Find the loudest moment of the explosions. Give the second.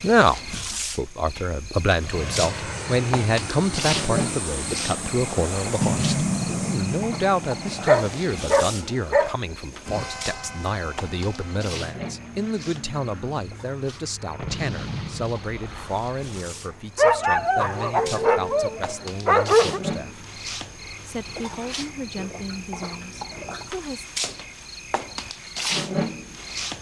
6 s.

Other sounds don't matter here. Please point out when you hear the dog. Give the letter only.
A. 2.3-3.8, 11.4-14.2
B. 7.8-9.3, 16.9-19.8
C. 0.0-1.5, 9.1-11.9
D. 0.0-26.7
B.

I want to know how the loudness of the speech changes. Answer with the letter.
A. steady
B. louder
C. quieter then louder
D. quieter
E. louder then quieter
D.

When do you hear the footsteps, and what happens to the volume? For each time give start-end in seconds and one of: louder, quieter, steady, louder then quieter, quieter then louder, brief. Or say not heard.
not heard.